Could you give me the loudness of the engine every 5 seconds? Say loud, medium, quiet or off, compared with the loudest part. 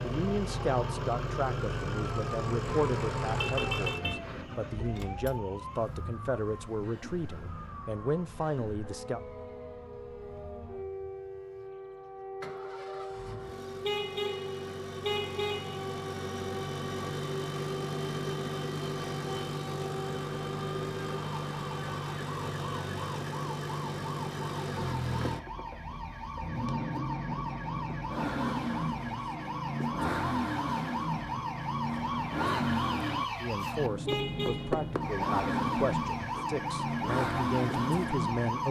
loud, quiet, quiet, loud, loud, loud, loud, loud.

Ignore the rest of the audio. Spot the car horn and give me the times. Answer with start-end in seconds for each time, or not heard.
2.6-4.5, 13.8-15.8, 34.0-34.9.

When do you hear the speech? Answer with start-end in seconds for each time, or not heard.
0.0-9.2, 33.4-38.6.